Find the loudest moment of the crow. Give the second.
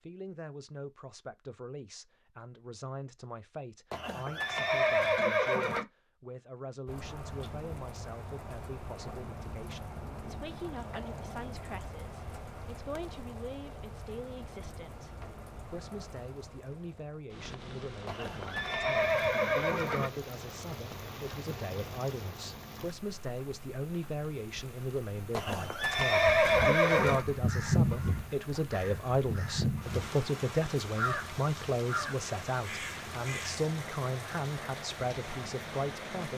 28 s.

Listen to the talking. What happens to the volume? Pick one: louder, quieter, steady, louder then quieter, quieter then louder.
louder.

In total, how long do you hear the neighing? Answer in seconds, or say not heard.
6 s.